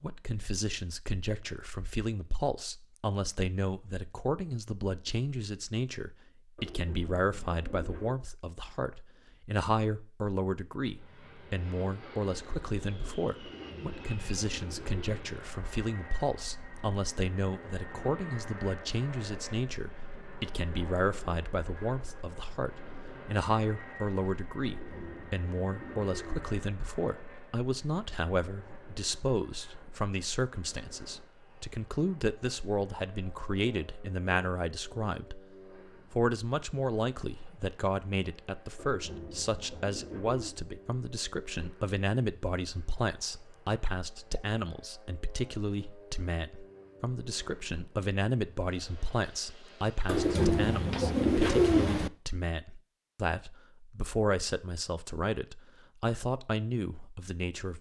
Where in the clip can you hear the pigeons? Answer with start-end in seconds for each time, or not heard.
6.5-8.2, 13.4-15.3, 24.6-26.4, 38.8-40.5, 50.0-52.1.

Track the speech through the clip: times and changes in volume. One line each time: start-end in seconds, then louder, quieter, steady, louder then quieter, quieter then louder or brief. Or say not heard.
0.0-35.4 steady
36.1-57.7 steady.